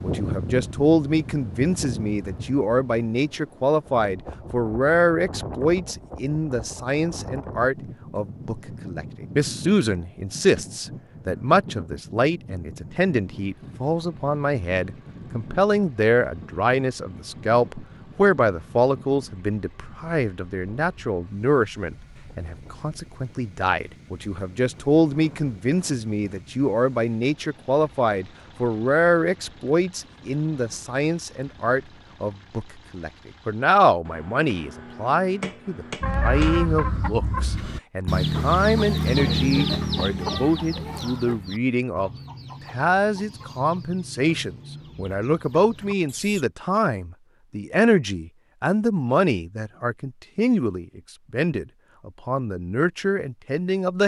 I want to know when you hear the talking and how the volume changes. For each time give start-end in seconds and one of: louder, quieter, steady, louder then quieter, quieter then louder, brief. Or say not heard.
0.0-54.0 steady.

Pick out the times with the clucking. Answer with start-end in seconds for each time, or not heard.
36.0-46.5.